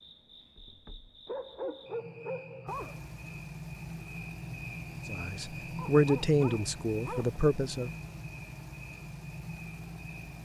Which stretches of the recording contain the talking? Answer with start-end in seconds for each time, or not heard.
5.0-7.9.